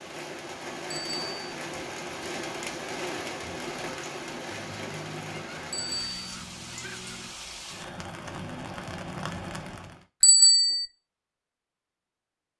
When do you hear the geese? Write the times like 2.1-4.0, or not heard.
4.5-7.3.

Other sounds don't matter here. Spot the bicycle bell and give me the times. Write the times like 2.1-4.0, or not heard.
0.9-1.5, 5.7-6.3, 10.2-10.8.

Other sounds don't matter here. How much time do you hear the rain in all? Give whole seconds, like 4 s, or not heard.
10 s.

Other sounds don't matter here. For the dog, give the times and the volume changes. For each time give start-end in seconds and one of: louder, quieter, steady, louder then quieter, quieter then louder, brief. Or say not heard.
not heard.